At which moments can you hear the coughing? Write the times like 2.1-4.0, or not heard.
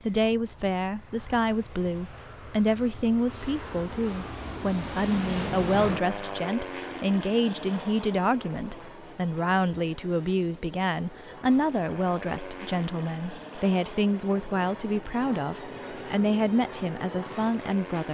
not heard.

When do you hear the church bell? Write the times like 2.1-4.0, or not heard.
not heard.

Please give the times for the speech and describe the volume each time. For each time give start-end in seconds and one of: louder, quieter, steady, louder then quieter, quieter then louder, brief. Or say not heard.
0.0-18.0 steady.